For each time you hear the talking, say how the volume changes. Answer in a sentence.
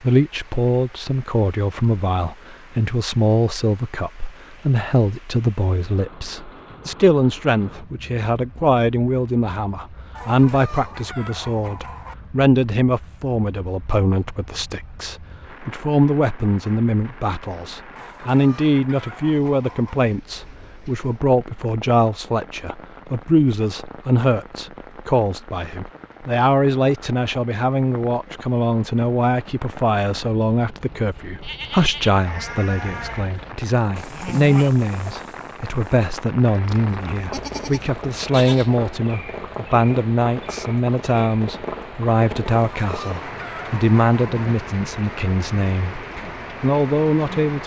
The talking can be heard from 0.0 to 47.6 s, at a steady volume.